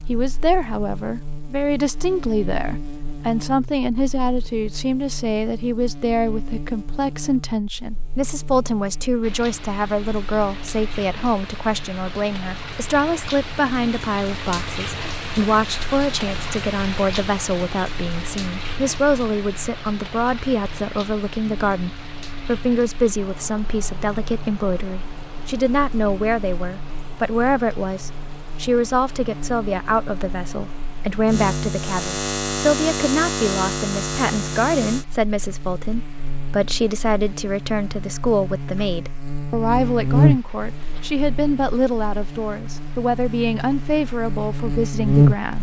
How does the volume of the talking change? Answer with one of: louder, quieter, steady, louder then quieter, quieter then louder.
steady.